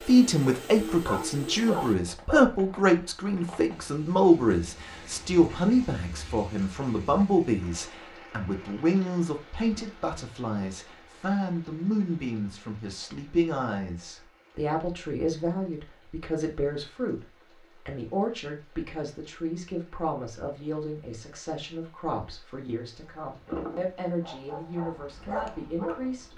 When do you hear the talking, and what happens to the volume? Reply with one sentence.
The talking can be heard from 0.0 to 26.3 s, getting quieter.